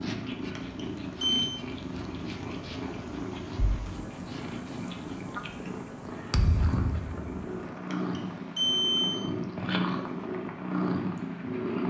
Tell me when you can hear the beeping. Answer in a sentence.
You can hear the beeping from 0.6 to 1.5 s and from 7.9 to 9.2 s.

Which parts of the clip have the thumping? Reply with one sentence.
You can hear the thumping from 3.5 to 4.0 s and from 6.3 to 7.5 s.